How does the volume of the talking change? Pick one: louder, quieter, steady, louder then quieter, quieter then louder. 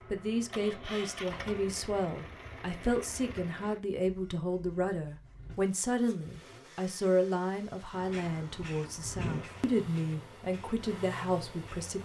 steady.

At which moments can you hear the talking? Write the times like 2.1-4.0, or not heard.
0.1-11.9.